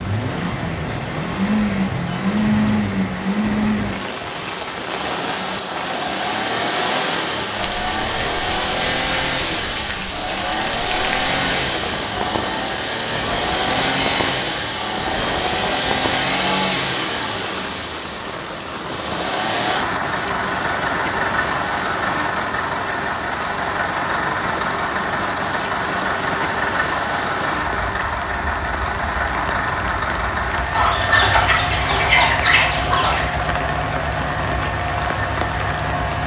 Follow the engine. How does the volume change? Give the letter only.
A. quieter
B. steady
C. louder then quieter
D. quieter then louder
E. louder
B.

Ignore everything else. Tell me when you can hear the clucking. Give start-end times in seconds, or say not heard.
30.7-33.3.